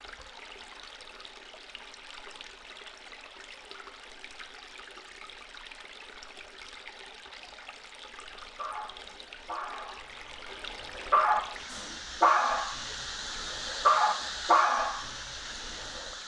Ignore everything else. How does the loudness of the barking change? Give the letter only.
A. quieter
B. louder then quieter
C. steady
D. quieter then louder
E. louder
E.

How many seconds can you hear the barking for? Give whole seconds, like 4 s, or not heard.
8 s.